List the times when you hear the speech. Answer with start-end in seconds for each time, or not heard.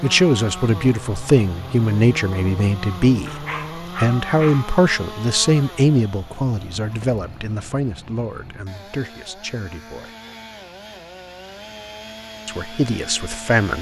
0.0-10.2, 12.4-13.7.